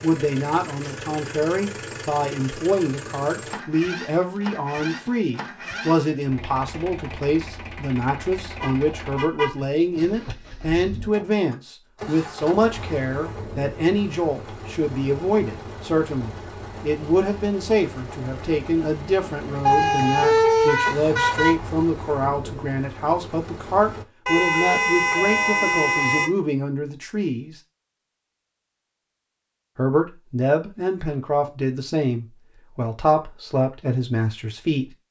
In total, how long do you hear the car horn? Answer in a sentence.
You can hear the car horn for 5 seconds altogether.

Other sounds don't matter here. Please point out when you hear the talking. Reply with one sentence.
The talking can be heard from 0.0 to 27.6 s and from 29.8 to 34.9 s.